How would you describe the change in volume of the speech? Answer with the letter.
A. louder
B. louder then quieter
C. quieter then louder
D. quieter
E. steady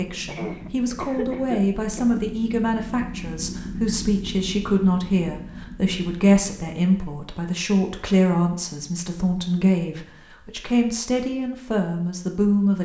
E.